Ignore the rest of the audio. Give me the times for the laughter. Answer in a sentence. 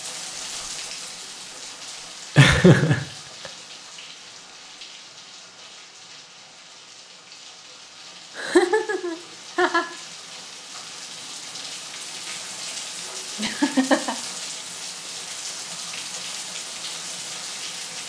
The laughter can be heard from 2.4 to 3.5 s, from 8.3 to 9.8 s and from 13.3 to 14.2 s.